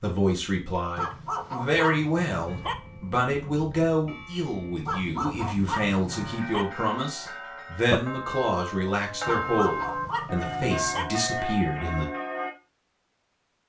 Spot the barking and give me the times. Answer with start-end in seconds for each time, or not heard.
0.9-2.8, 4.8-6.7, 9.2-11.1.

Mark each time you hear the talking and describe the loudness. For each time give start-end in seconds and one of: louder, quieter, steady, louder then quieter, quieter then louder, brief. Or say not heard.
0.0-12.1 steady.